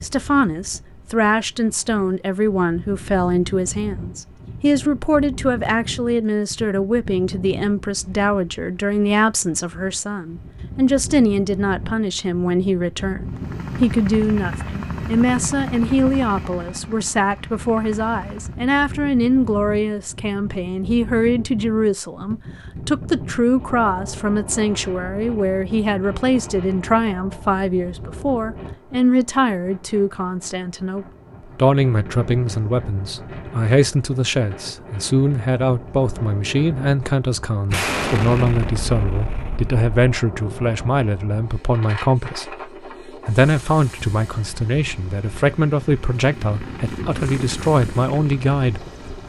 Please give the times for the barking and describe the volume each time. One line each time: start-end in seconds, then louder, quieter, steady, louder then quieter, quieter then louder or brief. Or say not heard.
not heard.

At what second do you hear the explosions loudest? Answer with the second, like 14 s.
38 s.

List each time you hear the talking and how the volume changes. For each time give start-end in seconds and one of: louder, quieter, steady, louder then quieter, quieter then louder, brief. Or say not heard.
0.0-49.2 steady.